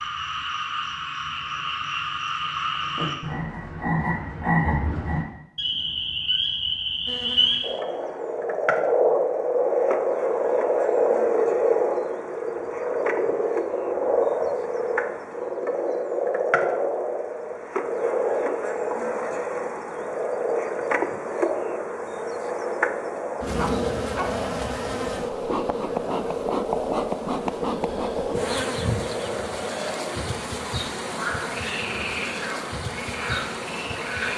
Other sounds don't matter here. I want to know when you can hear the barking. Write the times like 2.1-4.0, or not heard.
23.6-24.4.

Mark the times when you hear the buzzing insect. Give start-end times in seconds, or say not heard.
7.0-34.3.